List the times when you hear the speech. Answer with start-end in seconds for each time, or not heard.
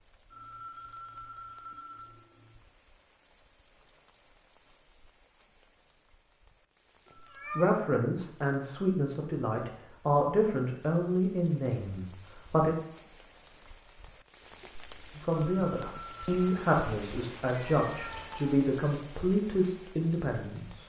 7.5-12.8, 15.2-20.8.